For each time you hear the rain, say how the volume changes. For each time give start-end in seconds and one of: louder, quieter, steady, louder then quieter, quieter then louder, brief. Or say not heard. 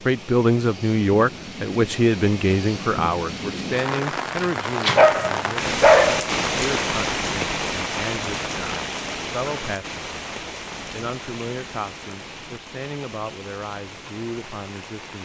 0.0-15.2 louder then quieter.